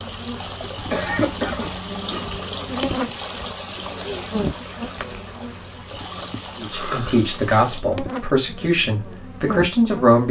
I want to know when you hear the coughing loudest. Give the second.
1 s.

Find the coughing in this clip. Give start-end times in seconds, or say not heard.
0.9-2.2, 6.7-7.2.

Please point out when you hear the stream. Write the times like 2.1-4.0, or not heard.
0.0-7.8.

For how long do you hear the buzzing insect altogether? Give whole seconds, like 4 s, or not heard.
10 s.